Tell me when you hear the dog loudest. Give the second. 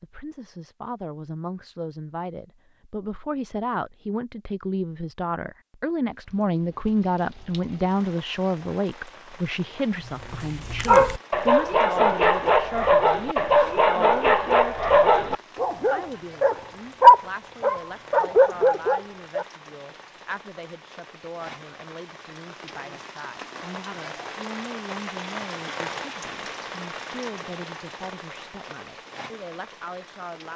17 s.